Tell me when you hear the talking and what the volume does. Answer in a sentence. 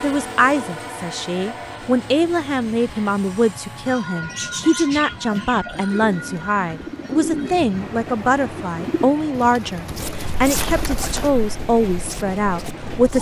The talking can be heard from 0.0 to 13.1 s, at a steady volume.